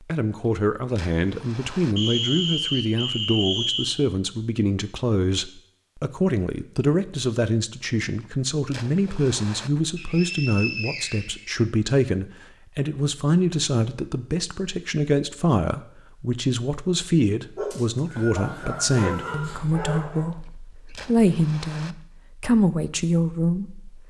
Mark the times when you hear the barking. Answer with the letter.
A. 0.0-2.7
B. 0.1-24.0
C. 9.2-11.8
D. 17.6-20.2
D.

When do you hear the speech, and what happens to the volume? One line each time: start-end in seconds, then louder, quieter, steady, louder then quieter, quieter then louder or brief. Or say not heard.
0.1-24.0 steady.